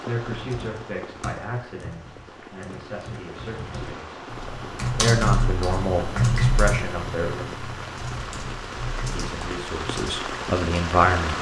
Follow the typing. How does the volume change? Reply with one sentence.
The loudness of the typing goes up, then down.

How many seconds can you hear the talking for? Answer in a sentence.
You can hear the talking for 9 seconds altogether.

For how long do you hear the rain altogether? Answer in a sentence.
You can hear the rain for 11 seconds altogether.